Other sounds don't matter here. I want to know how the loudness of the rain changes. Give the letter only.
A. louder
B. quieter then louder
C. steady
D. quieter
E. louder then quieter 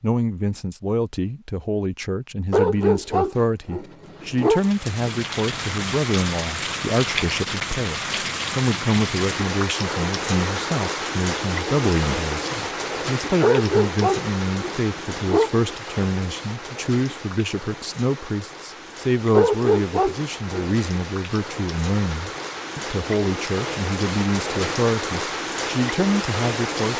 B.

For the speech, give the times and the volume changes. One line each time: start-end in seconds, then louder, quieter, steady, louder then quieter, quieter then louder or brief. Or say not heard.
0.0-26.9 steady.